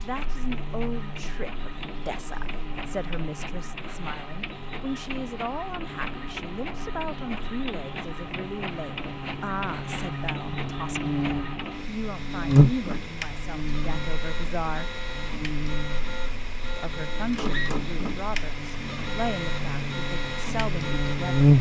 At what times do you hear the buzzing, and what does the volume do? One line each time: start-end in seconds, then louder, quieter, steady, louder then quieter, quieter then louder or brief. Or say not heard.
0.0-21.5 louder then quieter.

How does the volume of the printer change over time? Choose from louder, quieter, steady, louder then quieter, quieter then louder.
louder.